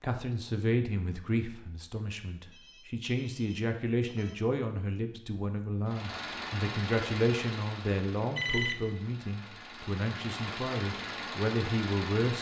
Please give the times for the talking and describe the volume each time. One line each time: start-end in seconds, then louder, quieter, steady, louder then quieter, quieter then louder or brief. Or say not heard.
0.0-12.3 steady.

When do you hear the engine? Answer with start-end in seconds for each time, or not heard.
5.8-12.3.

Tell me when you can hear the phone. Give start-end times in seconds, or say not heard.
2.5-4.3, 8.3-8.9.